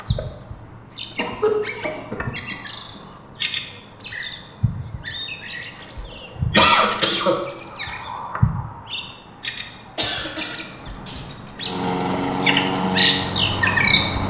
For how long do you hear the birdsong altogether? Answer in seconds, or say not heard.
14 s.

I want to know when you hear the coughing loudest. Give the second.
7 s.